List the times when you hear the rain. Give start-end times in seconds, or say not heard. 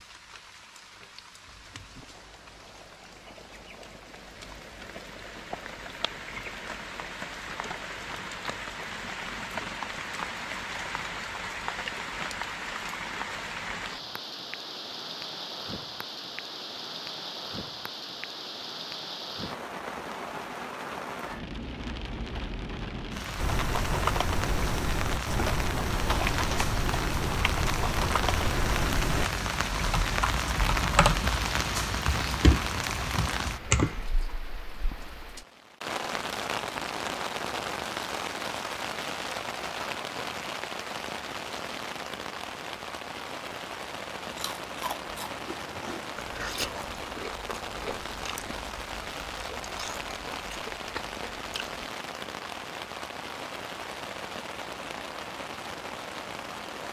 0.0-56.8.